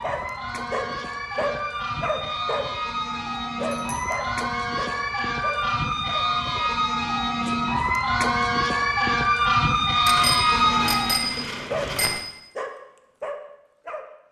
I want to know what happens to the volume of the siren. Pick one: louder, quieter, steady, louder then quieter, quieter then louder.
louder.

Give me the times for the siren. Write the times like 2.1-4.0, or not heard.
0.0-11.3.